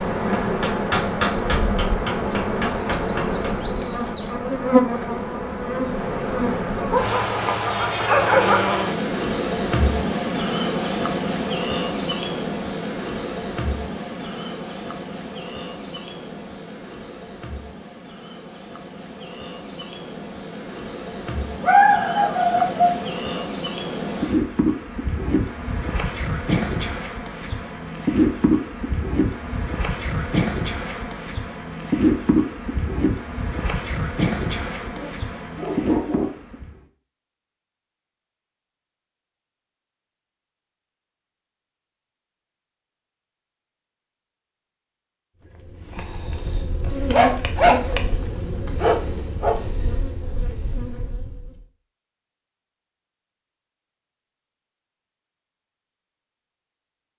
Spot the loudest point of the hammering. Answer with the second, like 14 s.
1 s.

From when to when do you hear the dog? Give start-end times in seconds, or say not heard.
6.9-8.8, 21.6-23.4, 34.8-36.4, 47.0-49.7.